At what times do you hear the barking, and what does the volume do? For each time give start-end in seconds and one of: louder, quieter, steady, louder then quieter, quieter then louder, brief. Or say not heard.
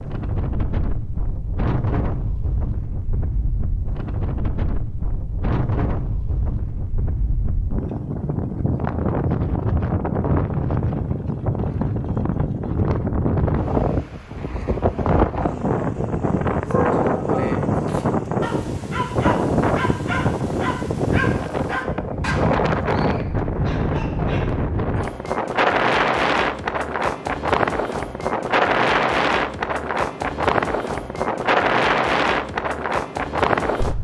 16.6-24.5 quieter.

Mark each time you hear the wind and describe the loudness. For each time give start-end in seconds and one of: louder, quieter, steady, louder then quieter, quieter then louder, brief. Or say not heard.
0.0-33.9 louder.